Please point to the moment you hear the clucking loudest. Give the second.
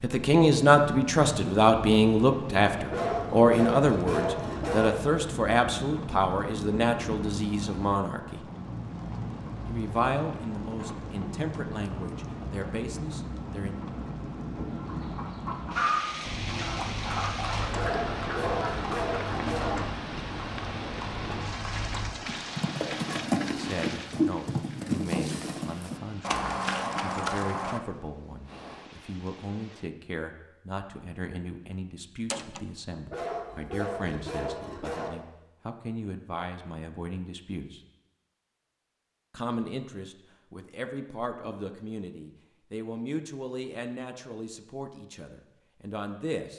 16 s.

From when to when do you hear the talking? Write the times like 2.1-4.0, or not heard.
0.0-8.4, 9.7-13.8, 23.5-37.8, 39.3-46.5.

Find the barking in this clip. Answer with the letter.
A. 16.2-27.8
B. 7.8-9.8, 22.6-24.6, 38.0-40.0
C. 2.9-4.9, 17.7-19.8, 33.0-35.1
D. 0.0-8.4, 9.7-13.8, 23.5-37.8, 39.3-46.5
C.